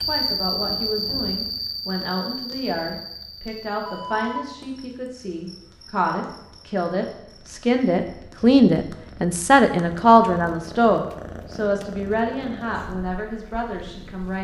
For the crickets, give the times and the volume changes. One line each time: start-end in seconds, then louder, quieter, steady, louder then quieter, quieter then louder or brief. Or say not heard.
0.0-9.1 quieter.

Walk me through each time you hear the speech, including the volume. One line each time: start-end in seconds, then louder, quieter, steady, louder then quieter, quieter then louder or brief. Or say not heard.
0.1-14.4 louder then quieter.